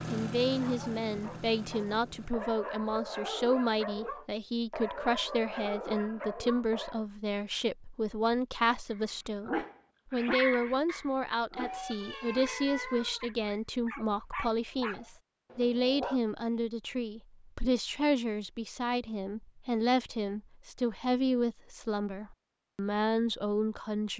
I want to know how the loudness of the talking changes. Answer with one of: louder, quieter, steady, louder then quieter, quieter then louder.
steady.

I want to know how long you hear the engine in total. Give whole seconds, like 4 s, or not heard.
2 s.